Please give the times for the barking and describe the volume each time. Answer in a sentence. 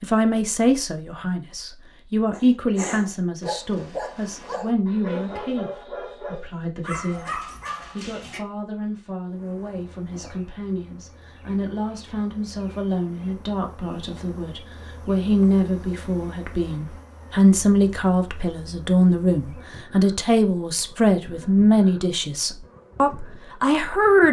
The barking can be heard from 2.3 to 8.4 s, at a steady volume.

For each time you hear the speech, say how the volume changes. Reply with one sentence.
The speech can be heard from 0.0 to 24.2 s, getting quieter then louder.